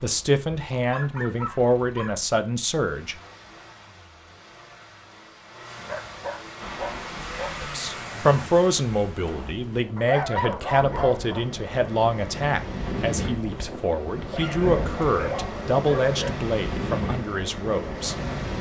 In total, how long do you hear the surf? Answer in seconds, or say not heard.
12 s.